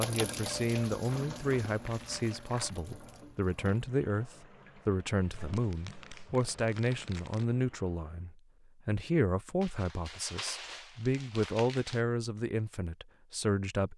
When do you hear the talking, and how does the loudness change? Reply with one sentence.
You can hear the talking from 0.0 to 13.9 s, at a steady volume.